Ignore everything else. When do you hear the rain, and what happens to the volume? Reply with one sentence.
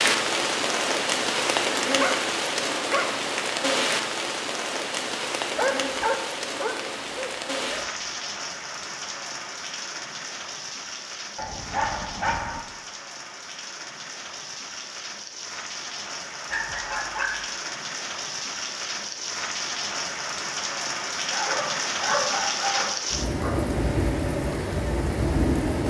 The rain can be heard from 0.0 to 25.8 s, getting quieter then louder.